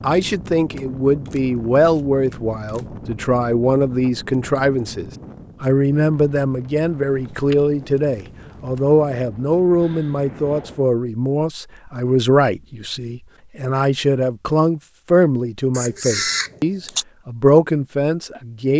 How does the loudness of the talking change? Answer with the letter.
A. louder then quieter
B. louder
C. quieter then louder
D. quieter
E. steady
E.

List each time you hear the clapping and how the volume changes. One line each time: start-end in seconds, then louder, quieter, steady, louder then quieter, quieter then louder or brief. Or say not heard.
not heard.